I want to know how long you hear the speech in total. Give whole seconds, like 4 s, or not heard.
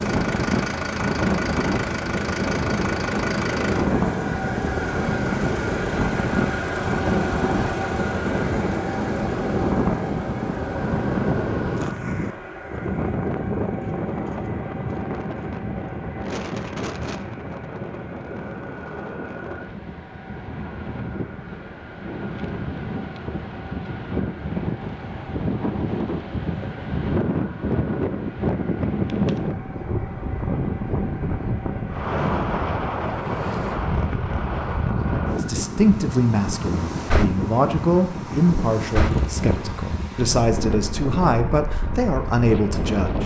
8 s.